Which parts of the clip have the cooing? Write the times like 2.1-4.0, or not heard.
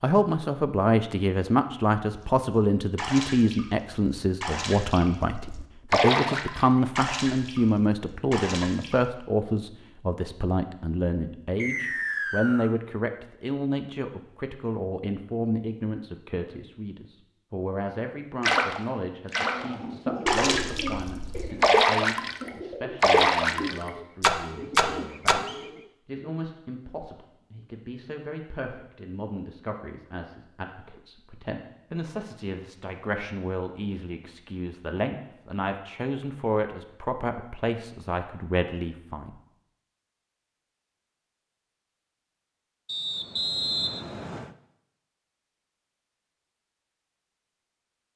19.4-25.9.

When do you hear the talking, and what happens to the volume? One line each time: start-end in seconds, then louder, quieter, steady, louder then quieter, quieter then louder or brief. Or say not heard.
0.0-39.3 quieter then louder.